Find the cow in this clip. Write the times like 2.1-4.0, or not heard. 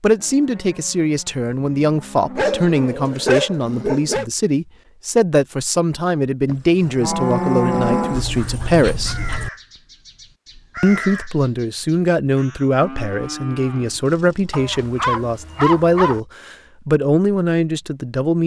0.1-3.0, 6.5-8.2, 12.8-15.7.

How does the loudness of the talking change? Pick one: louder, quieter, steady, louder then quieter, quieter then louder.
steady.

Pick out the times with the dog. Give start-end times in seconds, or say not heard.
2.4-4.2, 8.1-9.5, 14.5-16.2.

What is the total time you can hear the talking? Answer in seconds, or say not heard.
17 s.